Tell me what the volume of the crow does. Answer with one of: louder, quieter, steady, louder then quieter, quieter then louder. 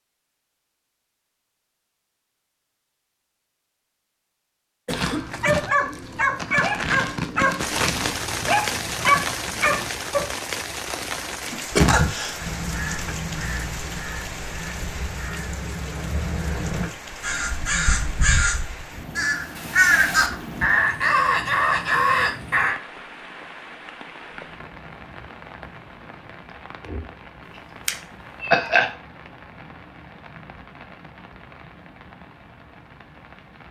louder.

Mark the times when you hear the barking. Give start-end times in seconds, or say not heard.
4.9-10.2.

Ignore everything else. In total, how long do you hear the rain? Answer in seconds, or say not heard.
26 s.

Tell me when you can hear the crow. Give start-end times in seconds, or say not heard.
12.3-22.8.